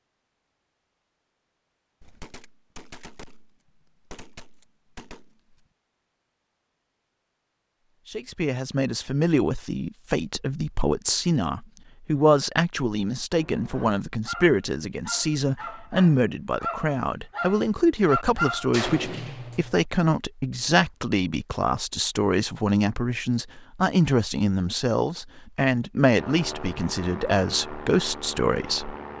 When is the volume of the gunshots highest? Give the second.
19 s.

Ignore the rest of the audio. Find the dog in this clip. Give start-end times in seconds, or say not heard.
13.3-18.7.